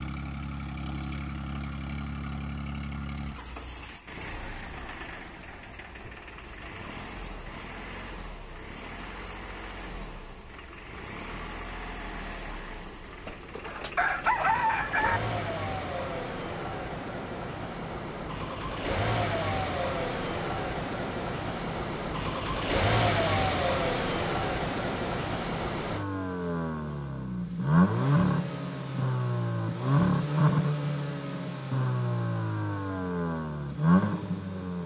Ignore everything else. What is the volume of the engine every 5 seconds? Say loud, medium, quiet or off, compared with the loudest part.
medium, quiet, quiet, medium, loud, loud, loud.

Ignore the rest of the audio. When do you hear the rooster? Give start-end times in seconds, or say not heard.
13.2-15.2.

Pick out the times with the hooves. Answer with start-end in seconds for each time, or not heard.
not heard.